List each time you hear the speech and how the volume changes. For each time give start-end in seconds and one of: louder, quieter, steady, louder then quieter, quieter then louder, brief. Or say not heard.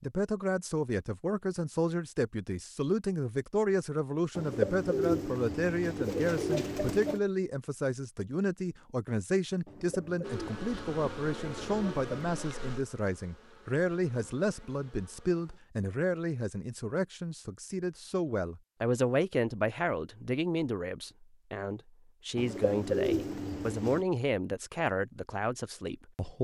0.0-26.3 steady.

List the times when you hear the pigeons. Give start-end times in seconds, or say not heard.
4.3-7.2, 9.7-12.3, 22.4-24.1.